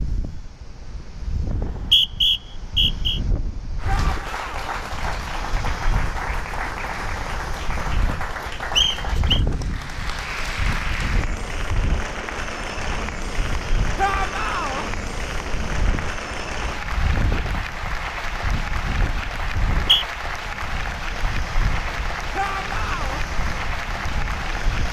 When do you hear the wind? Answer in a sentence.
The wind can be heard from 0.0 to 24.8 s.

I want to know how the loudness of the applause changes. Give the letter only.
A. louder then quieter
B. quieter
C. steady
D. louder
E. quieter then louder
C.